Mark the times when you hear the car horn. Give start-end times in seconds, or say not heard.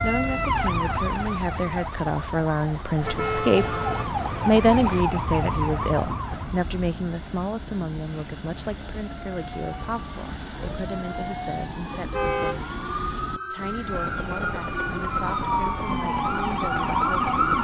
3.0-5.0, 11.9-12.6.